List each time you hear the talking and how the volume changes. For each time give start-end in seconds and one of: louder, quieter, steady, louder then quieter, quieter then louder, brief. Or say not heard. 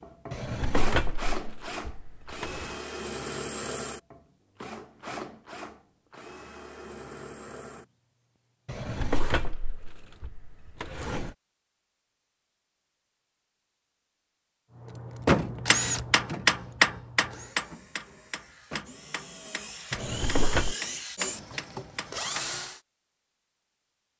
not heard.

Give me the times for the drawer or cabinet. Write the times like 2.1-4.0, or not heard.
0.3-2.8, 8.7-11.3, 19.9-20.8.